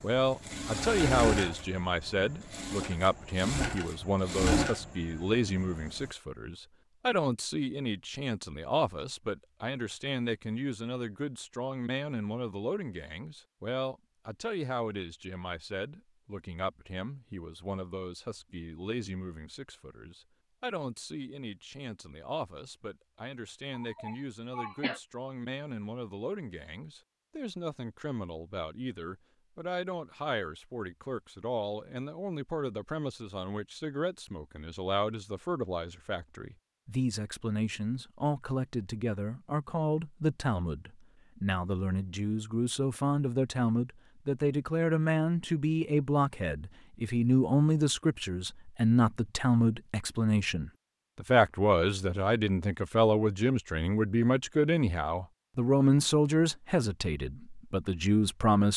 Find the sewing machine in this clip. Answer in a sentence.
The sewing machine can be heard from 0.0 to 6.1 s.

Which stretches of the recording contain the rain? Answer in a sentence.
You can't hear the rain here.